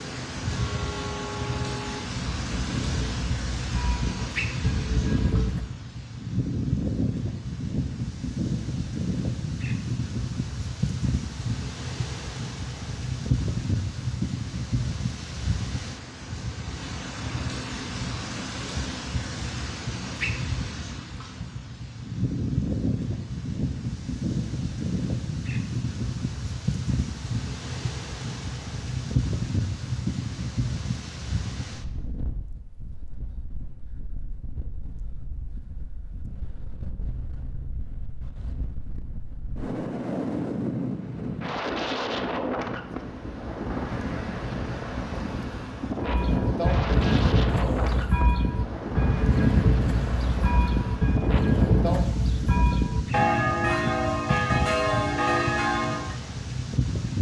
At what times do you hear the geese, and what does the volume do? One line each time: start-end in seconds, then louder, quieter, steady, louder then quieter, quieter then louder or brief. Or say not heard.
not heard.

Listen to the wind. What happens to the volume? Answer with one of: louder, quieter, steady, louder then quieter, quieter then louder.
steady.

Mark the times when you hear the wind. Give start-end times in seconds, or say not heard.
0.0-57.1.